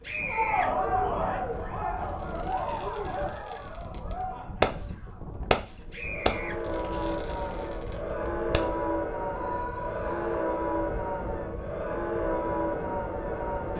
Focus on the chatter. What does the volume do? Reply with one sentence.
The loudness of the chatter goes down, then up.